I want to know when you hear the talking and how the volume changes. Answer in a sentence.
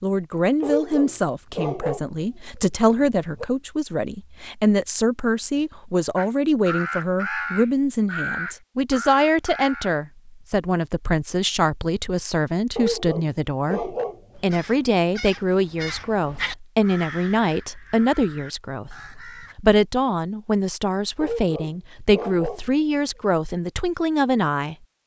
You can hear the talking from 0.0 to 24.8 s, at a steady volume.